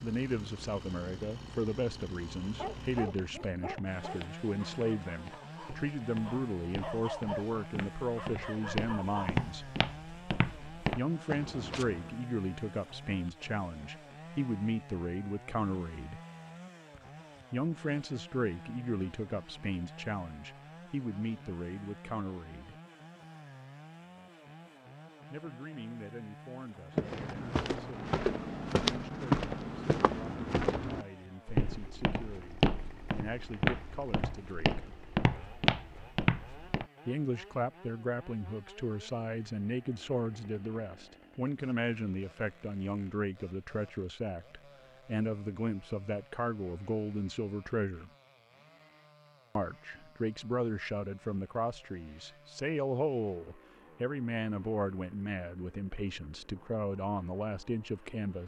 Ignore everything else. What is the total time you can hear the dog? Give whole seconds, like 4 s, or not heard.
7 s.